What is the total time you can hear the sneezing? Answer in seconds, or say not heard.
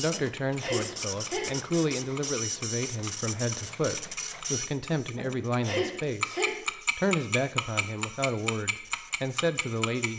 3 s.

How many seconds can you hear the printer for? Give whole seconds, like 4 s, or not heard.
10 s.